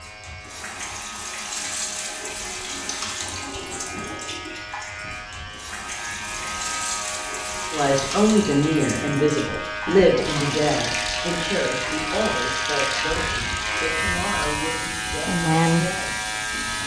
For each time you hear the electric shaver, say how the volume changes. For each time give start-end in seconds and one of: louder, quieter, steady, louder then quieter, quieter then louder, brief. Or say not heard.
0.0-16.8 louder.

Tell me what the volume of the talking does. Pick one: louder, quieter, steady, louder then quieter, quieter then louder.
quieter.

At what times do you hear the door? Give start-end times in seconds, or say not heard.
not heard.